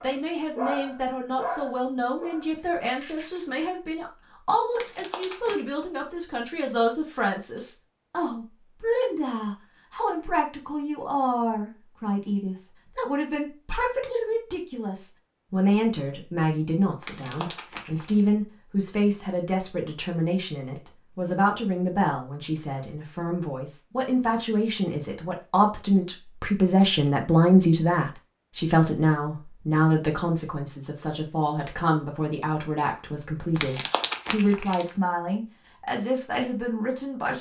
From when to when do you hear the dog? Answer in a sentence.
You can hear the dog from 0.0 to 3.5 s.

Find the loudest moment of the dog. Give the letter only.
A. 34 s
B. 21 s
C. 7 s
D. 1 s
D.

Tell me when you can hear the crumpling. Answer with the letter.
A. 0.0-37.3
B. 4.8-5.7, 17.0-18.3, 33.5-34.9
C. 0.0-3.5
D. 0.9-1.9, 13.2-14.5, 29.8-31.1
B.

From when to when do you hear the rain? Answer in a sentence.
You can't hear the rain here.